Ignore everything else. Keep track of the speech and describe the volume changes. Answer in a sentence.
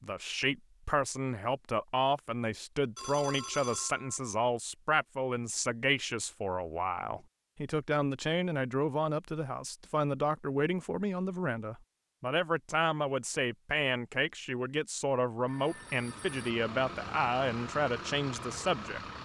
The volume of the speech stays about the same.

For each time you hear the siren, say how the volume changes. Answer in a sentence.
You can't hear the siren here.